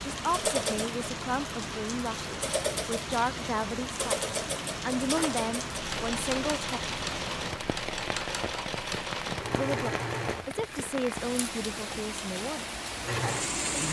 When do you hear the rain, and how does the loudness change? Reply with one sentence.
The rain can be heard from 0.0 to 13.8 s, at a steady volume.